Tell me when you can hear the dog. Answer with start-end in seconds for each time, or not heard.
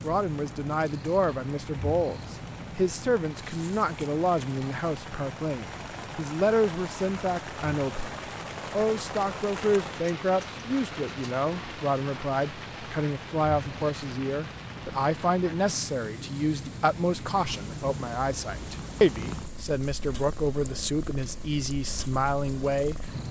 not heard.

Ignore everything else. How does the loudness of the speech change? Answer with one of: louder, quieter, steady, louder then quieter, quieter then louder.
steady.